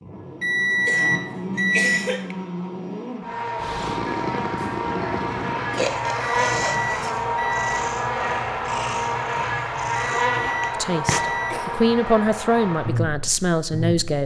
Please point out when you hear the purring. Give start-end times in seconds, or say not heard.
3.5-11.2.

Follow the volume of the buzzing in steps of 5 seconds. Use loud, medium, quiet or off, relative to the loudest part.
medium, loud, loud.